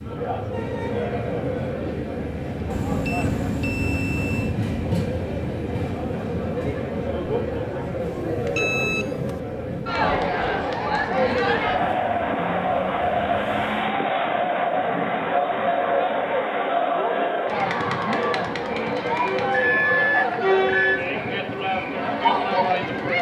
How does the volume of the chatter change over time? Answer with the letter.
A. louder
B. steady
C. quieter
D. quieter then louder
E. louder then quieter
A.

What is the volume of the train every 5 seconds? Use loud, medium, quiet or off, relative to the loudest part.
loud, loud, medium, off, off.